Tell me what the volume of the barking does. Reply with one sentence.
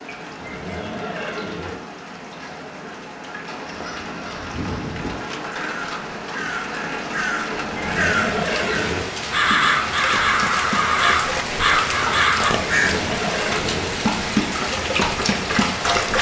The volume of the barking goes up.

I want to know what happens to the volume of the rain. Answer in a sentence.
The loudness of the rain goes up.